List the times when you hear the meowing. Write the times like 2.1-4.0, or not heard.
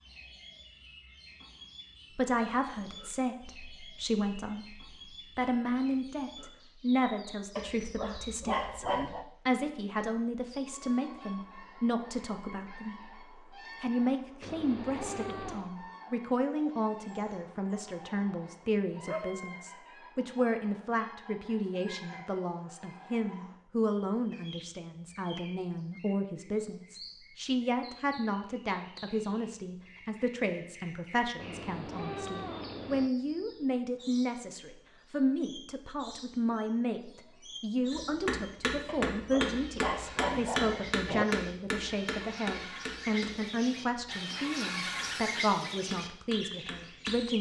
14.4-15.7, 31.4-33.1.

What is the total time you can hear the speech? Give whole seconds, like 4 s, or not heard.
44 s.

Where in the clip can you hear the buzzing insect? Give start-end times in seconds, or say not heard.
not heard.